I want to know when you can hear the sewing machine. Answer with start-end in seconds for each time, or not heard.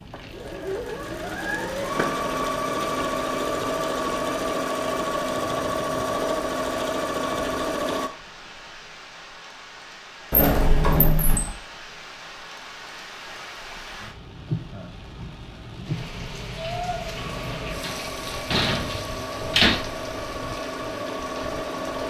0.0-8.1, 17.1-22.0.